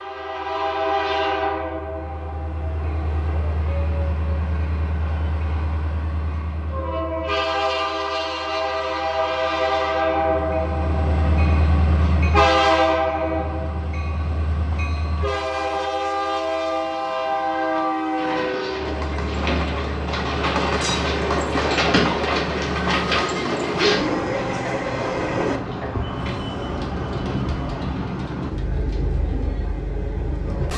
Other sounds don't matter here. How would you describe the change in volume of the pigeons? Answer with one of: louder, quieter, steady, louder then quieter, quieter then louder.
louder then quieter.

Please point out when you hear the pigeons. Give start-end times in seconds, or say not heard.
17.6-29.6.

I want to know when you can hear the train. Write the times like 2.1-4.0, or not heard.
0.0-30.7.